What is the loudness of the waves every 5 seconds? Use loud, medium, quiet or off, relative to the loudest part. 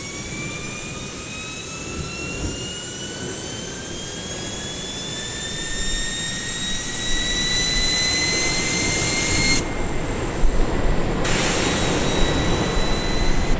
medium, medium, loud.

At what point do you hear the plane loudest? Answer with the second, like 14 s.
8 s.